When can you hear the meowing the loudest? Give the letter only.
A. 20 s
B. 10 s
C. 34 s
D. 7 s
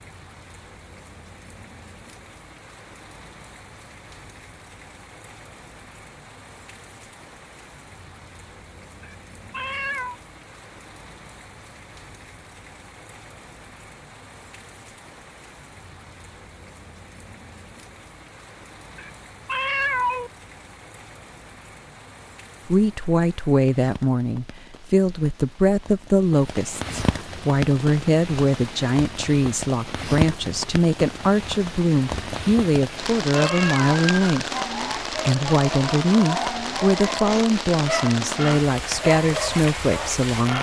A.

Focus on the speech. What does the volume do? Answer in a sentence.
The volume of the speech stays about the same.